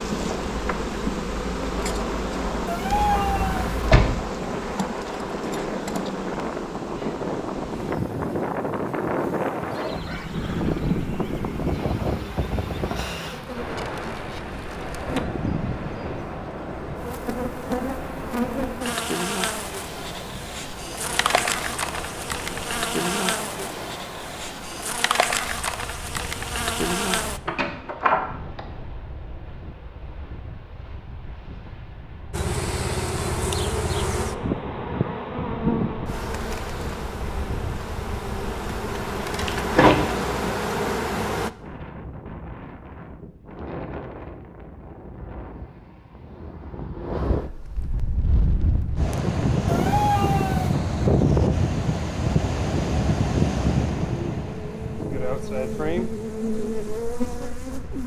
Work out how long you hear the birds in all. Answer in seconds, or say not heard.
not heard.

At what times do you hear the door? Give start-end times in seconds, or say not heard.
2.9-4.2, 27.4-28.6, 39.5-40.1.